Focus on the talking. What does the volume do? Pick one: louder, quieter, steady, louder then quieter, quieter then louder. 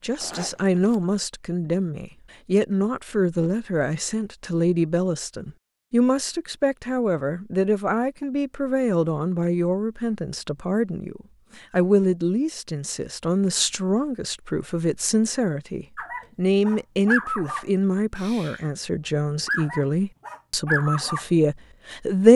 steady.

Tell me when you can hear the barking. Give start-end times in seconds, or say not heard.
15.9-18.6, 19.4-21.2.